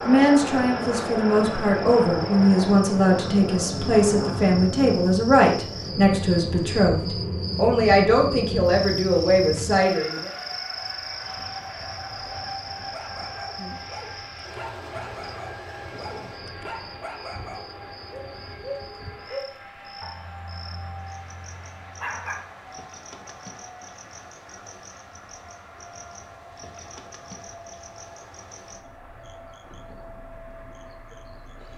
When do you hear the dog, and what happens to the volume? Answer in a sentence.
The dog can be heard from 12.8 to 22.5 s, getting louder then quieter.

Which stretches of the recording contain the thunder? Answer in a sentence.
The thunder can't be heard in this clip.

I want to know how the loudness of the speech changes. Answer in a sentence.
The loudness of the speech stays about the same.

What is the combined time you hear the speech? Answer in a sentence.
The speech can be heard for 10 seconds in total.